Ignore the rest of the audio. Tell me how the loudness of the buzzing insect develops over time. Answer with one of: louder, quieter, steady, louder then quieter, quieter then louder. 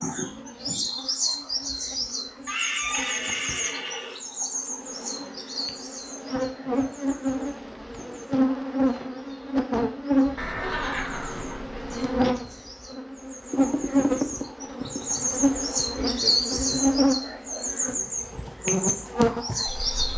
louder.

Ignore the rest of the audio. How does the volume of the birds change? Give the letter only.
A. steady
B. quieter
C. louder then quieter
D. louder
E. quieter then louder
E.